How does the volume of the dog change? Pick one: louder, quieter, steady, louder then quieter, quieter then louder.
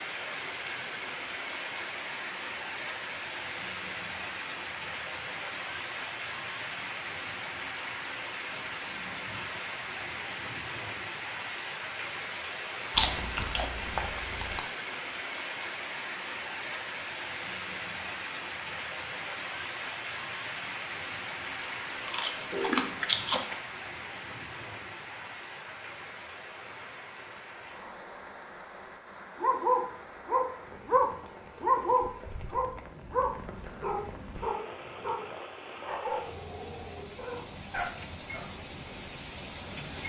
quieter.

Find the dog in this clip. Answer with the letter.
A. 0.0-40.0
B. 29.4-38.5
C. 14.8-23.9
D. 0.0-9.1
B.